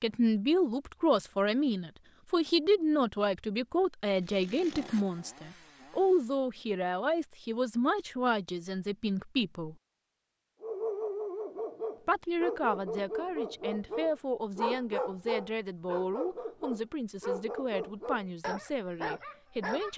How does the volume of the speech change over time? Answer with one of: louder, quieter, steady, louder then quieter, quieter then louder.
quieter.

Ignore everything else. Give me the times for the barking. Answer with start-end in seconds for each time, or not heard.
10.6-19.9.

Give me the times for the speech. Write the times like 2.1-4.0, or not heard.
0.0-9.8, 12.1-19.9.